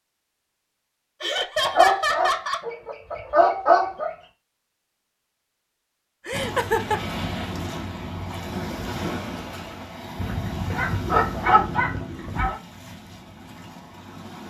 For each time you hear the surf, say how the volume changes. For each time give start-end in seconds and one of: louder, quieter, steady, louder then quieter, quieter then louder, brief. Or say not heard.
6.3-14.4 quieter.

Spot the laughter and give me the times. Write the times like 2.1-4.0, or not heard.
1.2-2.6, 6.2-7.0, 11.2-12.1.